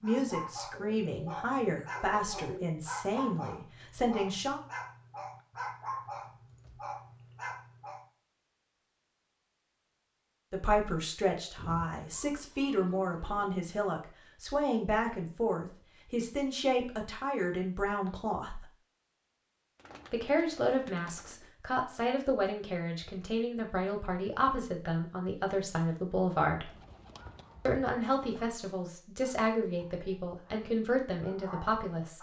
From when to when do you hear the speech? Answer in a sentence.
You can hear the speech from 0.0 to 4.6 s, from 10.5 to 18.6 s, from 20.1 to 26.7 s and from 27.6 to 32.1 s.